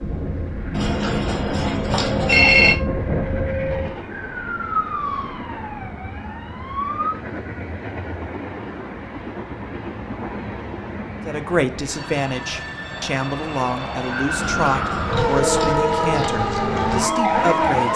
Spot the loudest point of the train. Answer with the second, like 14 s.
17 s.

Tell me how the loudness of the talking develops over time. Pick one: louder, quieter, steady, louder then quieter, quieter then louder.
steady.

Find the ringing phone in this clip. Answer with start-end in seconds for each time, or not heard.
0.7-2.8, 14.3-15.9.